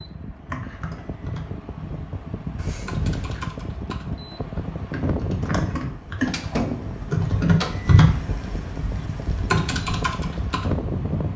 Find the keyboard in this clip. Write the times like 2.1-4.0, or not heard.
0.5-10.8.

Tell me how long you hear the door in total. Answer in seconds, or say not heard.
3 s.